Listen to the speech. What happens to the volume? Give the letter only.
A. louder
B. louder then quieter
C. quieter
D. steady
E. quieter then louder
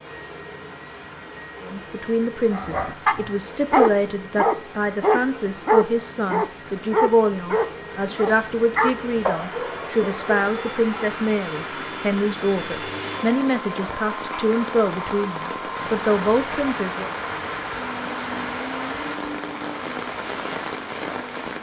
D.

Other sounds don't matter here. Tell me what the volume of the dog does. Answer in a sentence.
The volume of the dog goes down.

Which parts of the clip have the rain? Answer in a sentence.
You can hear the rain from 0.0 to 21.5 s.